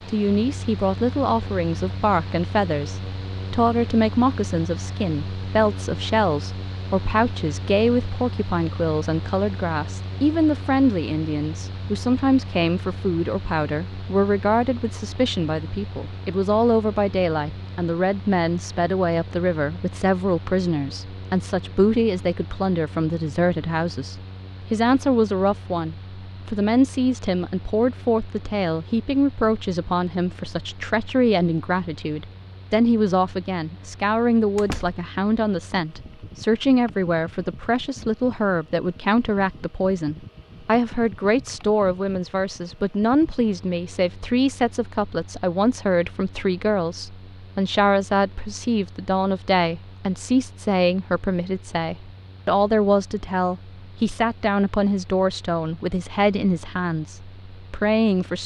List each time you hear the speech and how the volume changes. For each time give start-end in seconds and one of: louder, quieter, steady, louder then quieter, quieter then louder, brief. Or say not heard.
0.1-58.4 steady.